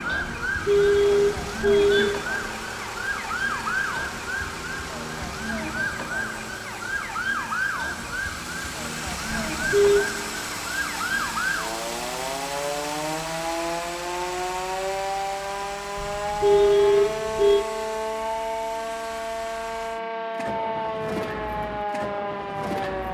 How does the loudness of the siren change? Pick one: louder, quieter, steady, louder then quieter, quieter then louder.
steady.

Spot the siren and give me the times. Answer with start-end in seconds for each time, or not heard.
0.0-23.0.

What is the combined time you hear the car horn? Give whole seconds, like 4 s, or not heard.
4 s.